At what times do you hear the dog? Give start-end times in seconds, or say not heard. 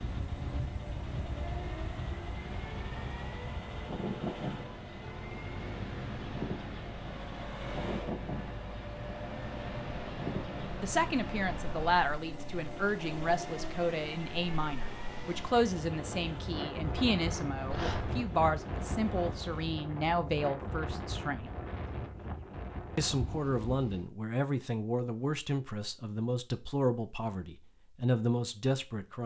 17.7-18.1.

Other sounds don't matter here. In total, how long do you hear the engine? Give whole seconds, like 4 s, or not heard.
20 s.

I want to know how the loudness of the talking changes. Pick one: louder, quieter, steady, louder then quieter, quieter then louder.
steady.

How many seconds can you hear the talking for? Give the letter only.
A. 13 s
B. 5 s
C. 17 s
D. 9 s
C.